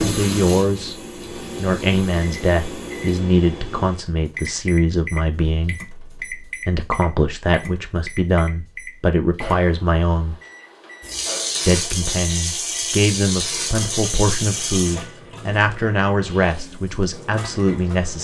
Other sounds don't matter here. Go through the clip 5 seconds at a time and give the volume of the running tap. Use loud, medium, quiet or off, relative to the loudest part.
medium, off, loud, quiet.